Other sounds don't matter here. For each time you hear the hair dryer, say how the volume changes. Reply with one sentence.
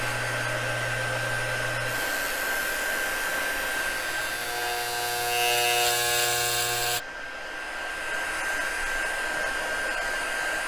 You can hear the hair dryer from 0.0 to 10.6 s, getting quieter then louder.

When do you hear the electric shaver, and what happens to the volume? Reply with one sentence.
You can hear the electric shaver from 0.0 to 7.0 s, getting louder.